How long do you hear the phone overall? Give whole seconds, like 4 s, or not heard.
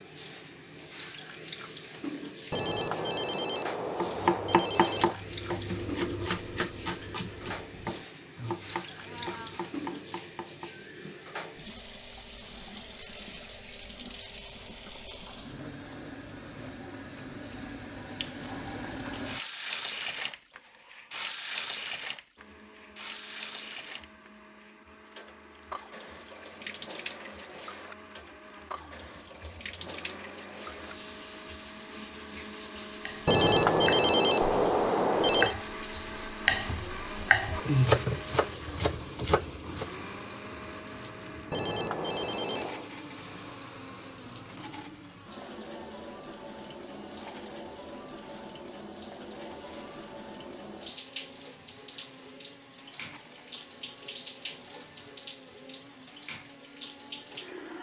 6 s.